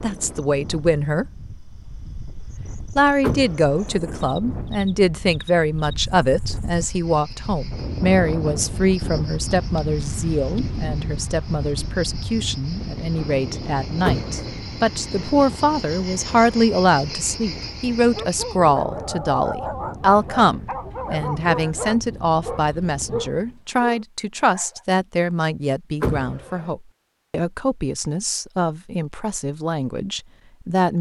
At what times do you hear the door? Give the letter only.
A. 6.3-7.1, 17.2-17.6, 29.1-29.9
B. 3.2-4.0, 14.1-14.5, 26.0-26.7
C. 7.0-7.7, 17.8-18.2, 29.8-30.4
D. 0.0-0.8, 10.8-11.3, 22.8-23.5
B.